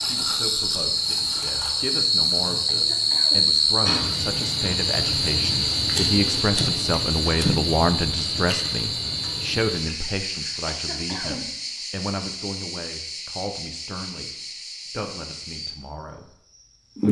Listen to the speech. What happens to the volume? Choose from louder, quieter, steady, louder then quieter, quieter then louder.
louder then quieter.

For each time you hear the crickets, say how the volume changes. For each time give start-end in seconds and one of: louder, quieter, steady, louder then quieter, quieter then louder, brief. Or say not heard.
0.0-17.0 quieter.